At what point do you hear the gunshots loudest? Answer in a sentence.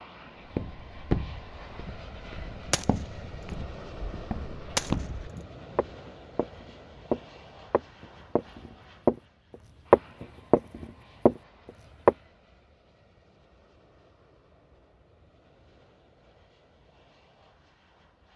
The loudest moment of the gunshots is at 5 seconds.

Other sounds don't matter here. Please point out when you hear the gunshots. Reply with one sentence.
You can hear the gunshots from 1.9 to 5.8 s.